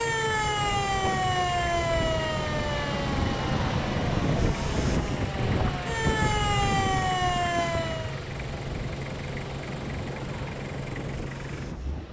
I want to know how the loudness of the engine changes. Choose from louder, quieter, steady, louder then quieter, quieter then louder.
steady.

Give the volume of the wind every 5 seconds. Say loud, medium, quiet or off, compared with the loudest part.
loud, loud, medium.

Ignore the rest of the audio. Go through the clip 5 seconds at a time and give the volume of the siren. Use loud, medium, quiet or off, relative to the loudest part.
loud, loud, off.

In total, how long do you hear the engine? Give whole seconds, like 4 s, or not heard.
12 s.